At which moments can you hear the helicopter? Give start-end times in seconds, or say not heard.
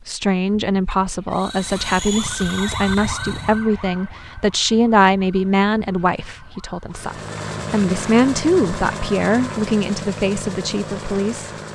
1.3-3.6, 6.9-11.7.